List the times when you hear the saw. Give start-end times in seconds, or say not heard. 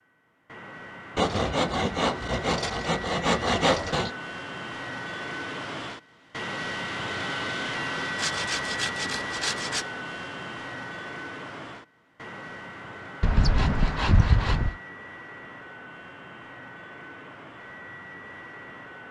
1.1-4.1, 8.2-9.8, 13.2-14.8.